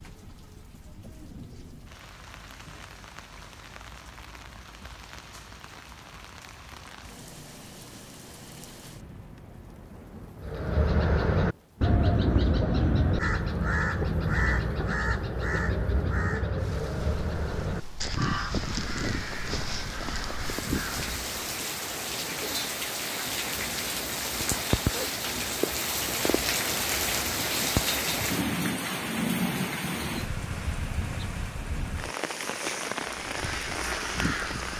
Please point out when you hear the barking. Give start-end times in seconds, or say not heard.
not heard.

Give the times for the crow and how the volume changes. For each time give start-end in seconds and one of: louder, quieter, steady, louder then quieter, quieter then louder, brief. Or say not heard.
10.4-21.3 quieter
33.1-34.7 brief.